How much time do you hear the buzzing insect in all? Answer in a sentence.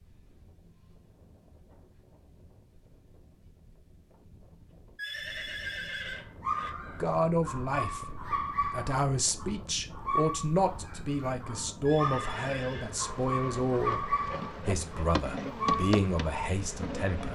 You can hear the buzzing insect for 5 seconds altogether.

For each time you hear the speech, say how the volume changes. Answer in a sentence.
The speech can be heard from 7.0 to 17.3 s, at a steady volume.